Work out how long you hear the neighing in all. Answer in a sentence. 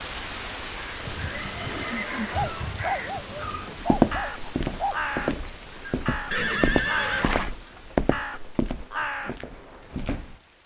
You can hear the neighing for 3 seconds altogether.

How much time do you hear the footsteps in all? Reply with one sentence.
You can hear the footsteps for 7 seconds altogether.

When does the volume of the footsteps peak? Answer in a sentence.
The loudest moment of the footsteps is at 4 seconds.